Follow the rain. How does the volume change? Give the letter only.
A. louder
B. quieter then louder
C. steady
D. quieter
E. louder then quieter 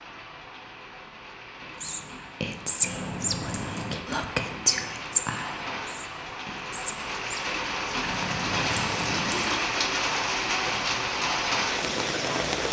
A.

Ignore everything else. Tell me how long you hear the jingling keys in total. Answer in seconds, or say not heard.
3 s.